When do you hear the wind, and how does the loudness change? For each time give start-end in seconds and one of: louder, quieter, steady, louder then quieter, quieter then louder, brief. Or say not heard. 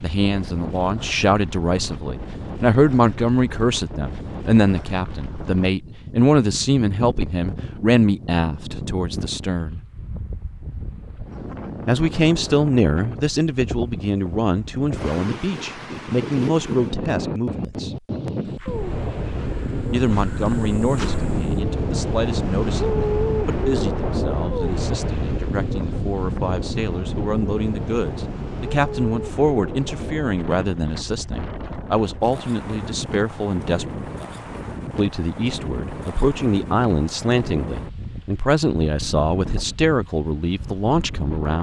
0.0-41.5 louder then quieter.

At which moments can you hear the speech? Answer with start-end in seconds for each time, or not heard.
0.0-9.8, 11.8-17.9, 19.9-34.0, 35.0-41.5.